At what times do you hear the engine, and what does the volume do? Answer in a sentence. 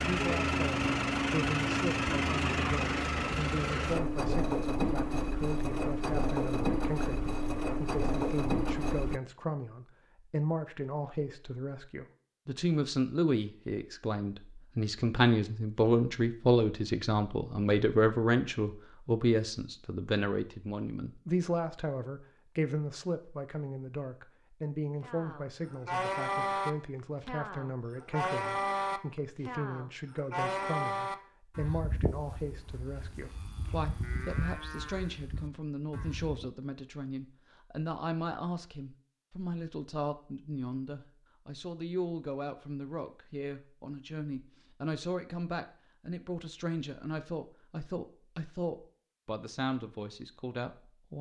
The engine can be heard from 0.0 to 9.2 s, at a steady volume.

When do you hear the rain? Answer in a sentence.
The rain can't be heard in this clip.